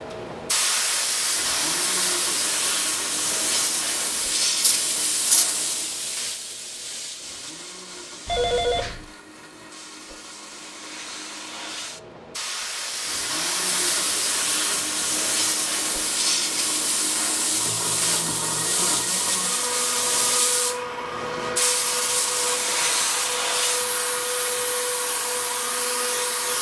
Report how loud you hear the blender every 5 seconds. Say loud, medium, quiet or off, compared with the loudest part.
medium, quiet, medium, loud, loud, loud.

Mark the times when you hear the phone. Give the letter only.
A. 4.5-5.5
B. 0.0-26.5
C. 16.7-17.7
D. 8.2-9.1
D.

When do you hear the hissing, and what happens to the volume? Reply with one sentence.
The hissing can be heard from 0.0 to 26.5 s, getting quieter then louder.